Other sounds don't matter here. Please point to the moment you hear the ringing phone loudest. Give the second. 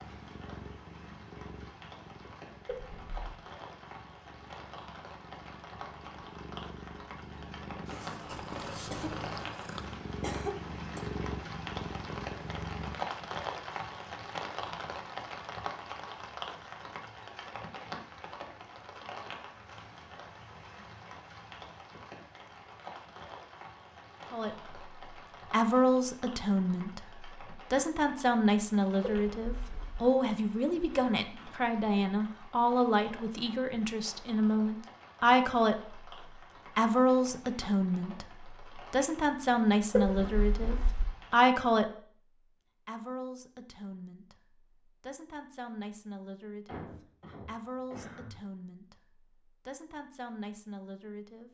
40 s.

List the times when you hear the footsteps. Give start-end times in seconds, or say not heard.
not heard.